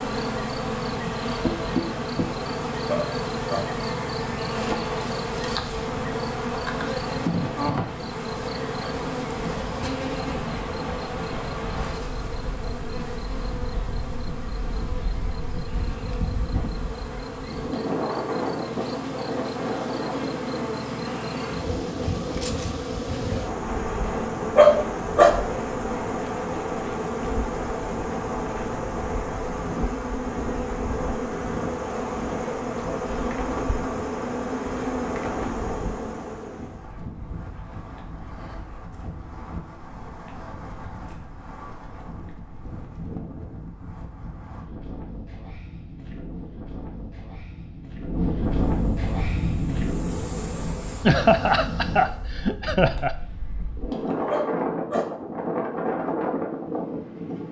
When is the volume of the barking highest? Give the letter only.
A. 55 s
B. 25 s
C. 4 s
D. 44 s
B.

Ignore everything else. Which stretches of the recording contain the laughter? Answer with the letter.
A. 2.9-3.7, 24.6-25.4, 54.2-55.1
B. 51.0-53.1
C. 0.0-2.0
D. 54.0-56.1
B.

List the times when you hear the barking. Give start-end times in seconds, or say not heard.
2.9-3.7, 24.6-25.4, 54.2-55.1.